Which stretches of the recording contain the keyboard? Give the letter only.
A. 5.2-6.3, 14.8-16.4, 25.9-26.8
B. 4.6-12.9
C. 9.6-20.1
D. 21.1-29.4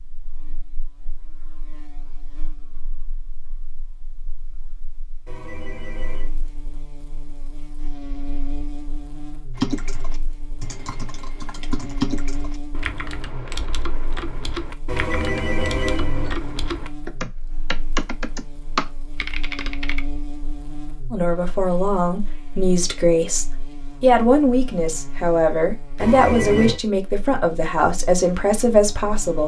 C.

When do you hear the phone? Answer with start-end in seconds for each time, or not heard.
5.2-6.3, 14.8-16.4, 25.9-26.8.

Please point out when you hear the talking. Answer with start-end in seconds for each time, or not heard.
21.1-29.4.